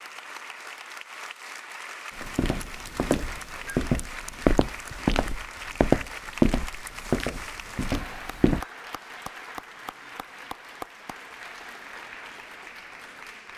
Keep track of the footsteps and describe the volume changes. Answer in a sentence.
The volume of the footsteps goes up, then down.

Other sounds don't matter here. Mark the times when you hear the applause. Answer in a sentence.
You can hear the applause from 0.0 to 13.5 s.